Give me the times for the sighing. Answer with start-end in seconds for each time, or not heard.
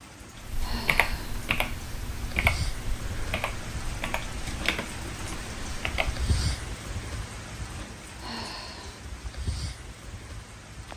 0.6-1.4, 8.2-9.0.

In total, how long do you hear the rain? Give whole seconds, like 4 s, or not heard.
11 s.